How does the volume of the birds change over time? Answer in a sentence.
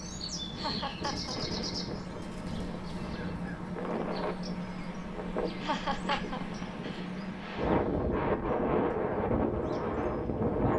The volume of the birds goes down.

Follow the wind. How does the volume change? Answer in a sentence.
The loudness of the wind goes up.